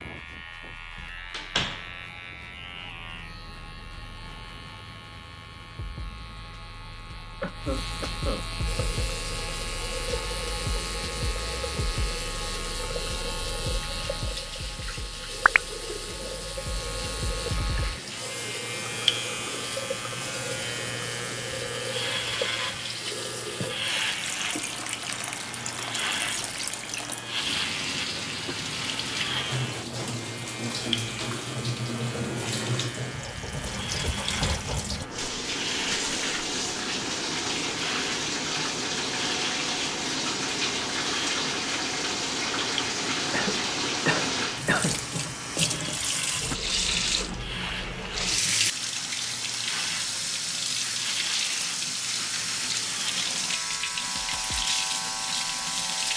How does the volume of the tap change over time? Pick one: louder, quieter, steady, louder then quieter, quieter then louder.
louder.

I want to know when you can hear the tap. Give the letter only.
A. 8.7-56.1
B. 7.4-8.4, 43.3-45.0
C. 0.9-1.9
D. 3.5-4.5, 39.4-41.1
A.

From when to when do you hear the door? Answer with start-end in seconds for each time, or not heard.
0.9-1.9.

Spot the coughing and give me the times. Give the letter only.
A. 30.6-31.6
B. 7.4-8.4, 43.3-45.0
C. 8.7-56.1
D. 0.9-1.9
B.